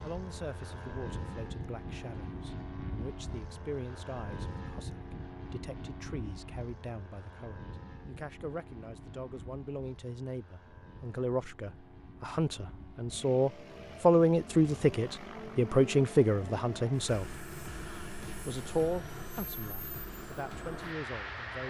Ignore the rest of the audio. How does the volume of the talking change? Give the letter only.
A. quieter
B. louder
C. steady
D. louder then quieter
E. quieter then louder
D.